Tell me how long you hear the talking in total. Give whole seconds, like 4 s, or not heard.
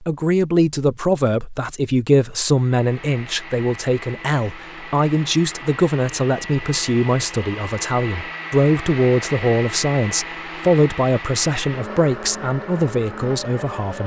14 s.